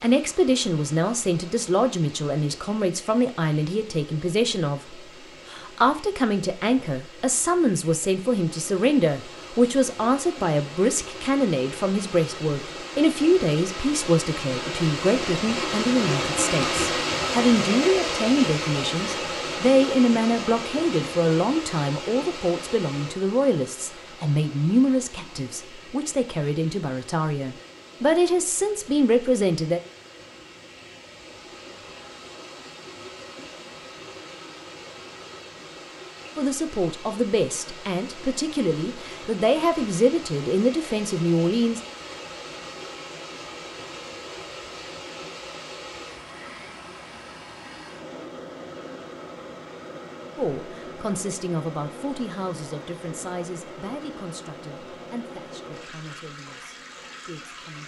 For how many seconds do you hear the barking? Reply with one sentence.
You can't hear the barking here.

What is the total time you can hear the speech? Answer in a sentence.
The speech can be heard for 43 seconds in total.